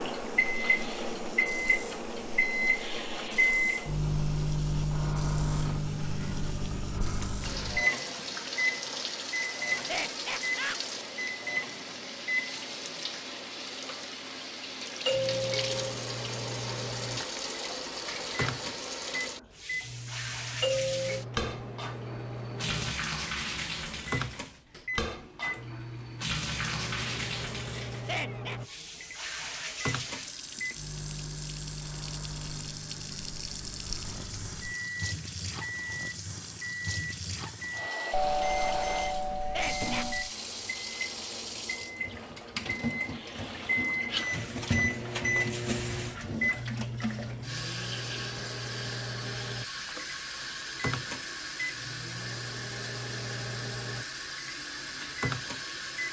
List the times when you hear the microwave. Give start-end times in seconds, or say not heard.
0.0-12.6, 15.1-56.0.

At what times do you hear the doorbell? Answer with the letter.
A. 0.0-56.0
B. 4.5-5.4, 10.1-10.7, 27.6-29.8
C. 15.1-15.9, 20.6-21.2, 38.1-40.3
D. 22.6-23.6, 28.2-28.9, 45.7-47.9
C.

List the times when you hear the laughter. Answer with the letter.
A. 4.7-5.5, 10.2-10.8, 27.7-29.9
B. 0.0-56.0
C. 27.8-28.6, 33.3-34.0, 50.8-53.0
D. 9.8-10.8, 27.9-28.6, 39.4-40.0
D.